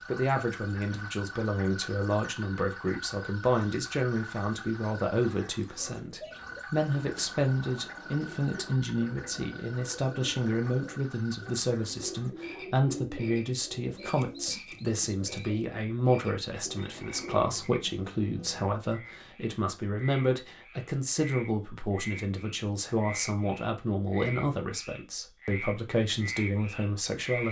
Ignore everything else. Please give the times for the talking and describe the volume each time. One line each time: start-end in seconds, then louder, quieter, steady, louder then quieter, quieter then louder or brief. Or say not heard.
0.1-27.4 steady.